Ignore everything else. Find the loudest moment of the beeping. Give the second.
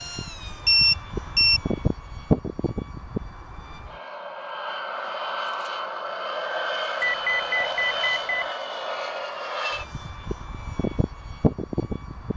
1 s.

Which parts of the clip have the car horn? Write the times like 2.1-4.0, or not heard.
not heard.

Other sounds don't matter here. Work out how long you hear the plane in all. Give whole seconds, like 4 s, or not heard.
12 s.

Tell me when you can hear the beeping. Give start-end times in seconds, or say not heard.
0.7-1.6, 7.0-8.4.